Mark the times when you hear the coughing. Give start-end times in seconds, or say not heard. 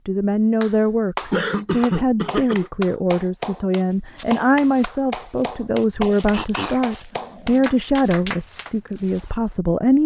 1.3-2.7, 6.3-7.8.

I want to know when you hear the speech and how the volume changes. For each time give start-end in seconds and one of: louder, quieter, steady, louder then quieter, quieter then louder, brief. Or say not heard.
0.1-10.0 steady.